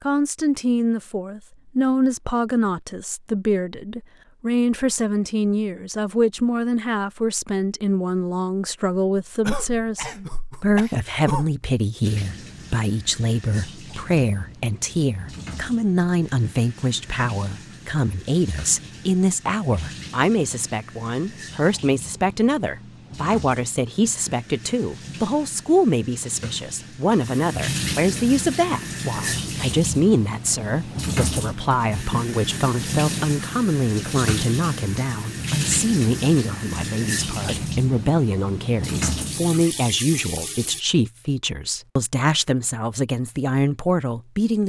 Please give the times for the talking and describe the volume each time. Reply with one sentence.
The talking can be heard from 0.0 to 44.6 s, at a steady volume.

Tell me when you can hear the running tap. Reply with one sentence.
You can hear the running tap from 12.0 to 40.9 s.